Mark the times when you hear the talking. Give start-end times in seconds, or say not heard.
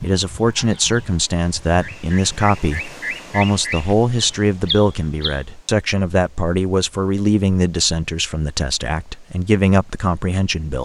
0.0-10.7.